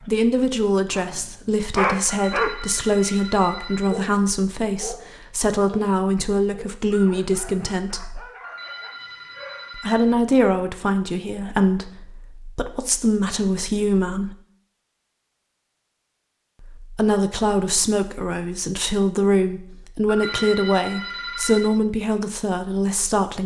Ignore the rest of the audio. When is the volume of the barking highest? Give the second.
2 s.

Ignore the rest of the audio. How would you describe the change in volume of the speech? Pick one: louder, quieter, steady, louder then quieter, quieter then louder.
steady.